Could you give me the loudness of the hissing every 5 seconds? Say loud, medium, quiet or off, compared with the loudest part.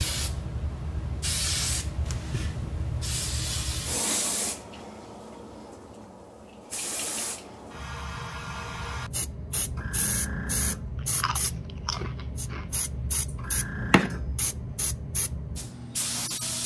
loud, medium, loud, loud.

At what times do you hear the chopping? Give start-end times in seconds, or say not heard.
not heard.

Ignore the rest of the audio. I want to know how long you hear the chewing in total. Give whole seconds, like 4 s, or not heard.
2 s.